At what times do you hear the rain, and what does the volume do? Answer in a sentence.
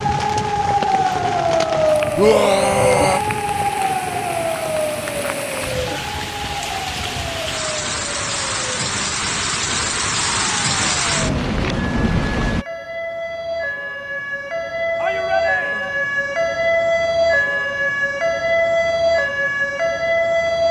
You can hear the rain from 0.0 to 12.7 s, getting louder.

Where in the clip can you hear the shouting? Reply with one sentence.
You can hear the shouting from 2.1 to 3.2 s and from 14.9 to 16.0 s.